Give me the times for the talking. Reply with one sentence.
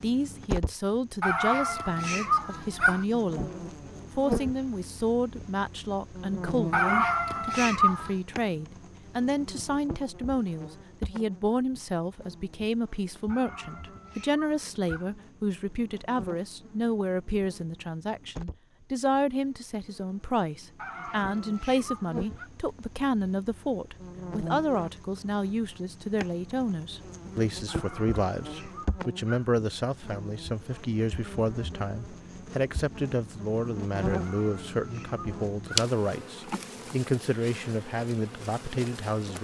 You can hear the talking from 0.0 to 3.5 s and from 4.2 to 39.3 s.